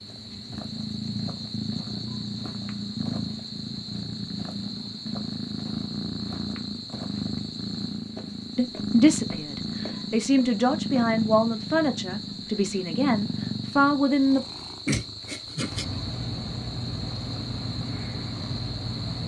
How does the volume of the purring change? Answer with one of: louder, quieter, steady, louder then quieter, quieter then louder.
steady.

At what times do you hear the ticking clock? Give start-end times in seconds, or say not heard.
not heard.